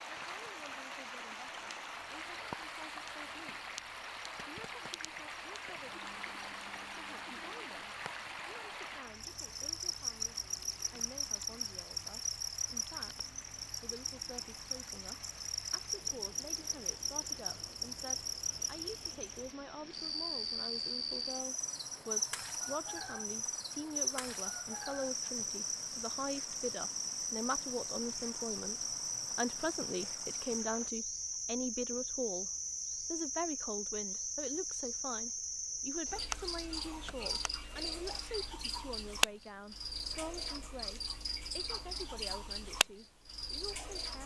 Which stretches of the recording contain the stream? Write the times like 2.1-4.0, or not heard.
0.0-30.9.